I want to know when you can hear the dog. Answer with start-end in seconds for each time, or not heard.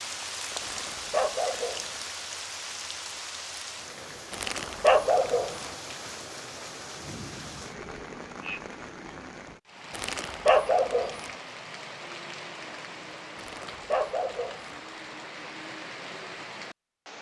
0.6-2.0, 4.3-5.7, 9.9-11.3, 13.3-14.8.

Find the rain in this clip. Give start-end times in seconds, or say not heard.
0.0-17.1.